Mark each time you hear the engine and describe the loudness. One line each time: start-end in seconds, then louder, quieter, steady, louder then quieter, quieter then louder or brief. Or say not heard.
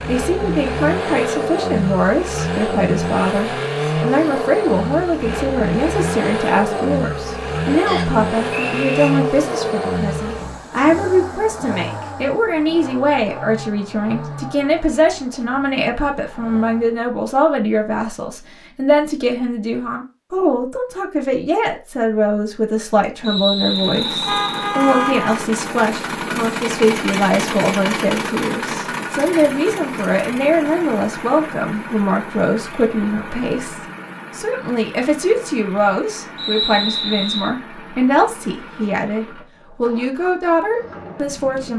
0.0-17.1 quieter
23.6-41.7 quieter.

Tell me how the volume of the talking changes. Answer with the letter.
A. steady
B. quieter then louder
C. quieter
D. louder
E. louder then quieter
A.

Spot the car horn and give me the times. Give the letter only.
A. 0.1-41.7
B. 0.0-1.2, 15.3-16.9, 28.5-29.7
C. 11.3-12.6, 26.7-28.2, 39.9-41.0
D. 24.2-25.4
D.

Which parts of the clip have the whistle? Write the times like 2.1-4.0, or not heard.
7.8-9.1, 23.2-24.8, 36.4-37.5.